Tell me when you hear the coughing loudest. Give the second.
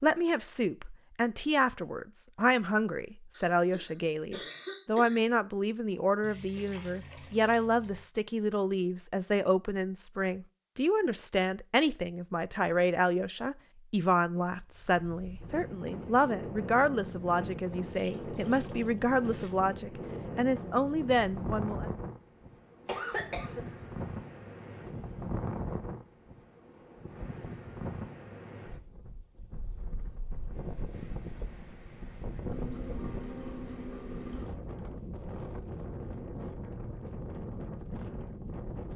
23 s.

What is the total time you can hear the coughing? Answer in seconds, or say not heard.
3 s.